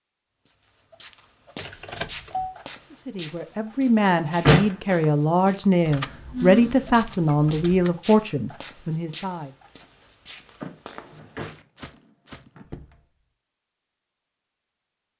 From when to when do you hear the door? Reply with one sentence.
The door can be heard from 4.0 to 4.8 s and from 11.1 to 11.6 s.